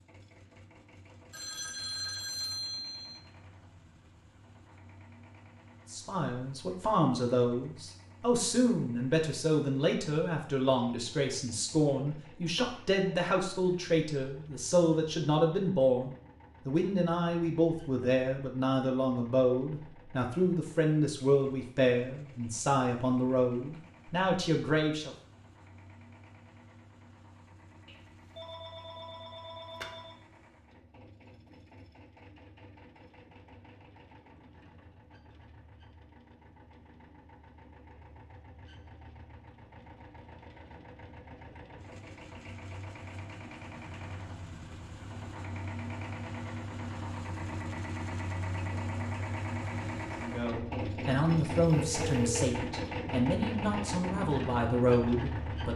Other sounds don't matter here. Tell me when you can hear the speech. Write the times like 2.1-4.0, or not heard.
5.9-25.1, 50.1-55.7.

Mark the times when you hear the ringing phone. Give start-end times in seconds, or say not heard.
1.3-3.2, 27.9-30.1, 51.6-52.5.